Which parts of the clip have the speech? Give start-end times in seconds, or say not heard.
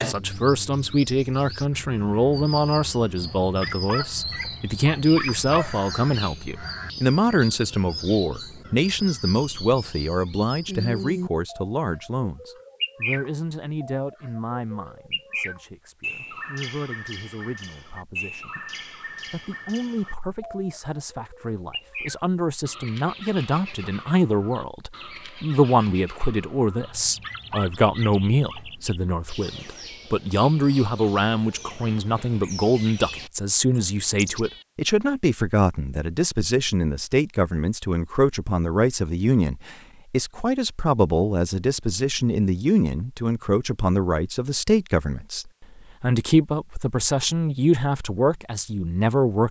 0.0-49.4.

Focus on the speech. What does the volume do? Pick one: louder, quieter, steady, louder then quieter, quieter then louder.
quieter then louder.